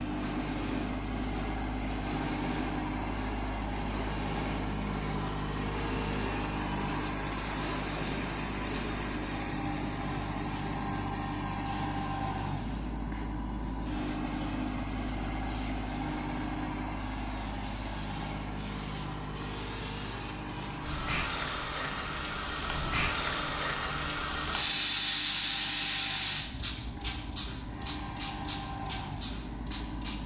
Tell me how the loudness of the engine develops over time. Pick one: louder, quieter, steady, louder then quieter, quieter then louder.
quieter.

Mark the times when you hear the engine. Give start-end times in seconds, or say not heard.
0.0-30.2.